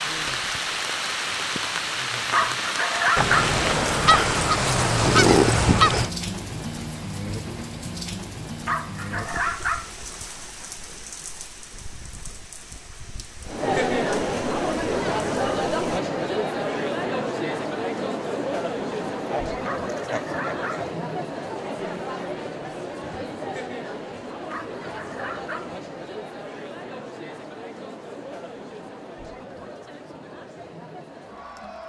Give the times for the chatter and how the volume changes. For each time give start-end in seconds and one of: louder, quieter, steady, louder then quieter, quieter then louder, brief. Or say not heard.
13.4-31.8 quieter.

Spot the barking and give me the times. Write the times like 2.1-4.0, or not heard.
2.3-3.5, 8.7-9.9, 19.6-20.9, 24.5-25.8.